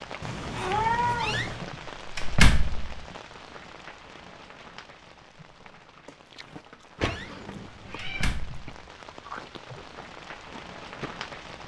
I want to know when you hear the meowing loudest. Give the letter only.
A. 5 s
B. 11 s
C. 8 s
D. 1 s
D.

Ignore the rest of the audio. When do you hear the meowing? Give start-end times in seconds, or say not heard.
0.2-1.6, 7.0-8.3.